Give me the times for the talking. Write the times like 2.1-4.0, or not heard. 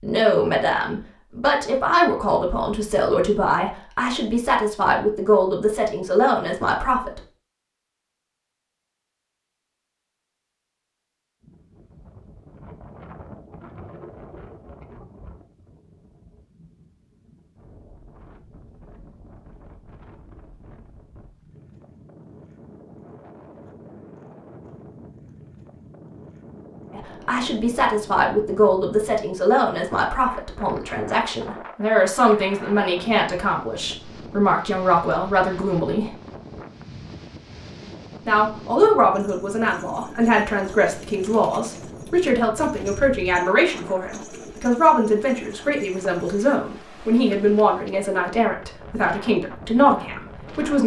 0.0-7.2, 26.9-36.1, 38.2-50.8.